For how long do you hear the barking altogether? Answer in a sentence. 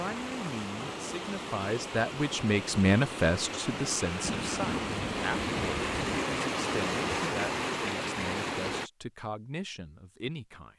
You can't hear the barking here.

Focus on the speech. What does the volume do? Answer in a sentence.
The loudness of the speech goes up, then down.